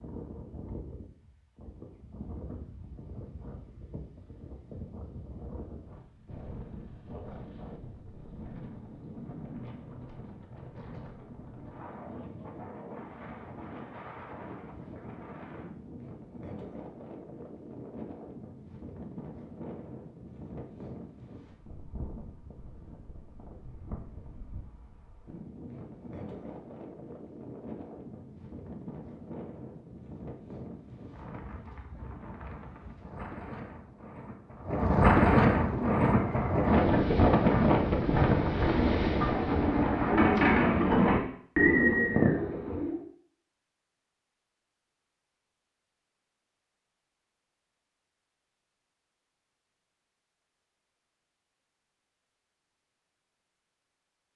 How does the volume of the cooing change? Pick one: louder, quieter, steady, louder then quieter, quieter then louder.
louder.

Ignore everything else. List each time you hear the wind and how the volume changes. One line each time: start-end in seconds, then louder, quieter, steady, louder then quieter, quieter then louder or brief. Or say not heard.
0.0-40.1 louder.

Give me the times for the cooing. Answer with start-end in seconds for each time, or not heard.
35.5-43.0.